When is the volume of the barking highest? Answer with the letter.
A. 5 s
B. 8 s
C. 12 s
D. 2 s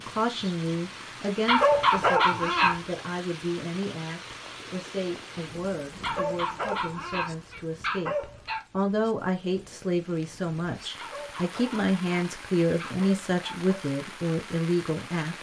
D.